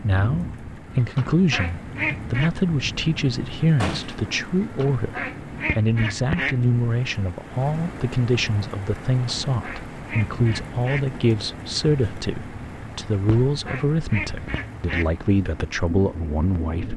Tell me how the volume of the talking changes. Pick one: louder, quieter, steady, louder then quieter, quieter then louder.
steady.